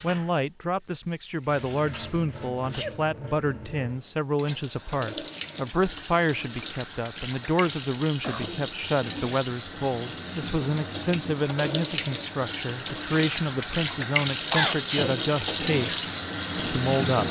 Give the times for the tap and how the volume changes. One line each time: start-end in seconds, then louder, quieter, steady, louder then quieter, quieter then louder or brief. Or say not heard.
0.0-17.2 louder.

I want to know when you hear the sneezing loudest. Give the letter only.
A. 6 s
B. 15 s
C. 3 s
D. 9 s
B.